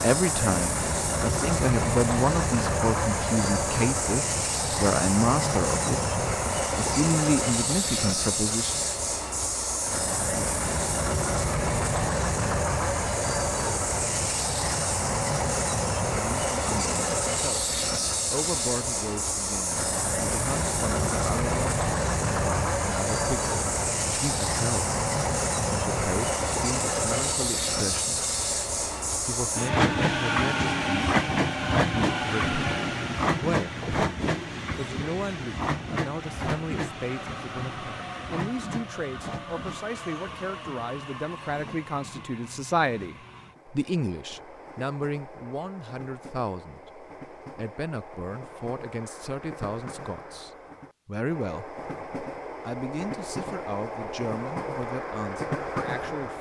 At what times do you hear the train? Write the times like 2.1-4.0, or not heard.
0.0-56.3.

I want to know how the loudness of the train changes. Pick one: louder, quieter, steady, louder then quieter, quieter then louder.
quieter.